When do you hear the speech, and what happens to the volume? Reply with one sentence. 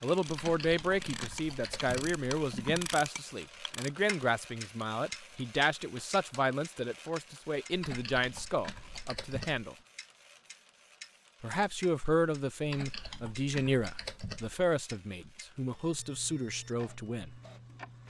You can hear the speech from 0.0 to 9.8 s, at a steady volume; and from 11.4 to 17.4 s, getting quieter.